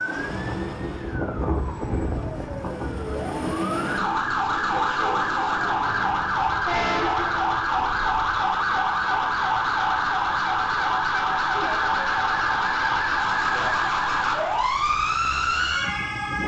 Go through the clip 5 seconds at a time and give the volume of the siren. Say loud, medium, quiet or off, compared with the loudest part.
medium, loud, loud, loud.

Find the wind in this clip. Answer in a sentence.
The wind can be heard from 0.0 to 8.4 s.